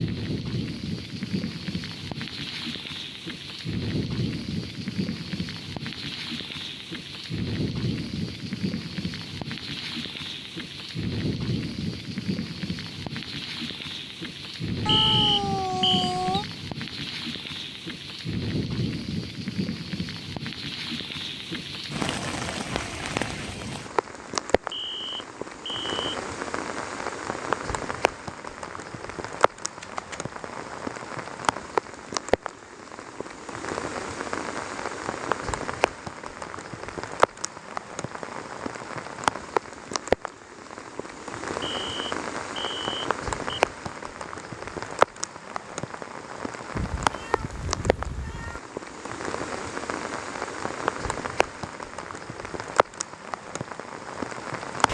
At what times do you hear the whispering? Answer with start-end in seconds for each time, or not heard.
not heard.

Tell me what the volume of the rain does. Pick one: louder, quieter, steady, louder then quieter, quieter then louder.
steady.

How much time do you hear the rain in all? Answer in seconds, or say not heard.
55 s.